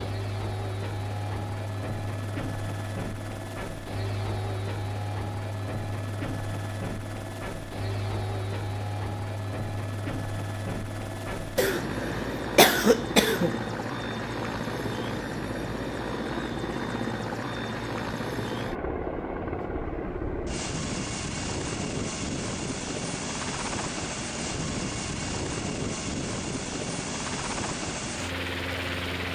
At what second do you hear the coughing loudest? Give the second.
13 s.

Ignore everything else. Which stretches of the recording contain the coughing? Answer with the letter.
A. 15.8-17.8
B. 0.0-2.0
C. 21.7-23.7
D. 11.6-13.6
D.